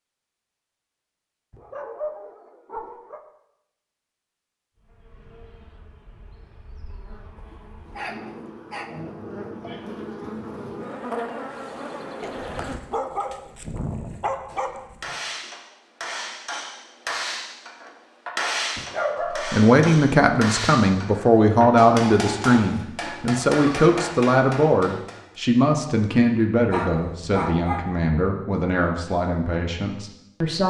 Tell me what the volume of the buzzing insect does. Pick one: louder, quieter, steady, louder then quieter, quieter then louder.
louder.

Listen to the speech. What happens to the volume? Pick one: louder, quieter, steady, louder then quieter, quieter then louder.
quieter.